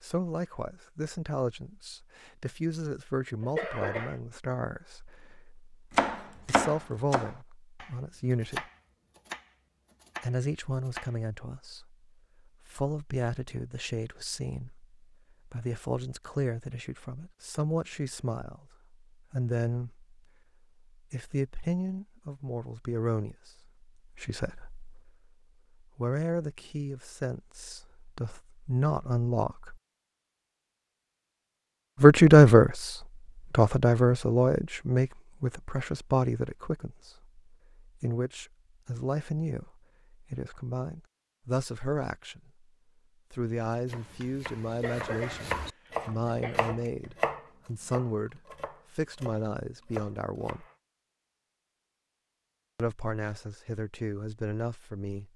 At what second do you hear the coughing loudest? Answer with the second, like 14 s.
4 s.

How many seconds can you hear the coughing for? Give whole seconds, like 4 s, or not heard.
3 s.